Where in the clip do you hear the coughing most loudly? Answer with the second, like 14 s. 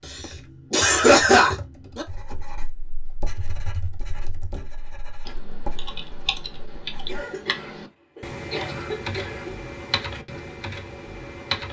1 s.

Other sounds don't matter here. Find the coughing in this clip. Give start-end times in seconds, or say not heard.
0.1-2.0, 7.0-9.6.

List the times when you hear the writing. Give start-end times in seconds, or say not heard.
2.1-7.2.